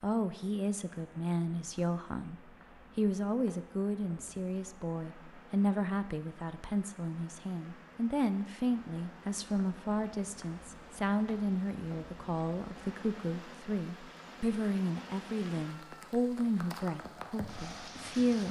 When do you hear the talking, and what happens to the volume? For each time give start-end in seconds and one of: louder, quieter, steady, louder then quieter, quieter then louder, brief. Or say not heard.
0.0-18.4 steady.